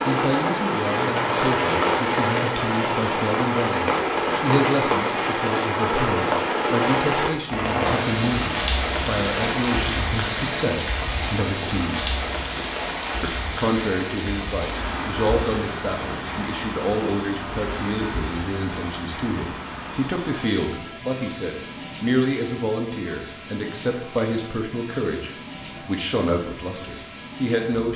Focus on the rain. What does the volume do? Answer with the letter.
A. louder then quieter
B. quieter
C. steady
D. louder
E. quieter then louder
B.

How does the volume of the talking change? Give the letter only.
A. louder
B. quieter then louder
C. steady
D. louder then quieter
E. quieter
C.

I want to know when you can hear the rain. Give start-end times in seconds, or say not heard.
0.0-27.9.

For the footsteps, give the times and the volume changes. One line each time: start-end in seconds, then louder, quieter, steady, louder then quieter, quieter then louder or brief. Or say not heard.
not heard.